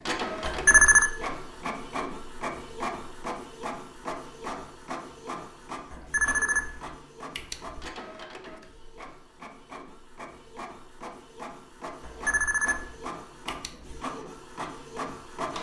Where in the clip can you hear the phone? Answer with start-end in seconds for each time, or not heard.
0.4-1.1, 5.9-7.8, 12.1-14.0.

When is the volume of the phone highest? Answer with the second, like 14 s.
1 s.